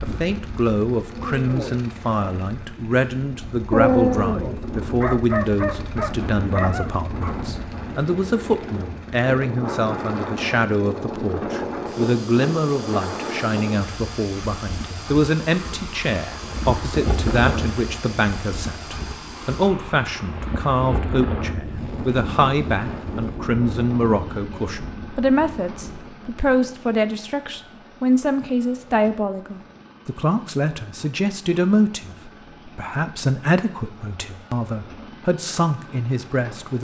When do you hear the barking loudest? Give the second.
4 s.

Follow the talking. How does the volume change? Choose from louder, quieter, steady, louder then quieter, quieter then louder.
steady.